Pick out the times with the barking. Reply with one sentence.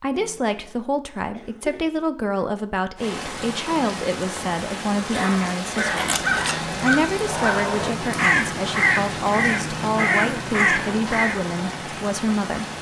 The barking can't be heard in this clip.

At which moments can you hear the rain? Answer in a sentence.
You can hear the rain from 3.0 to 12.7 s.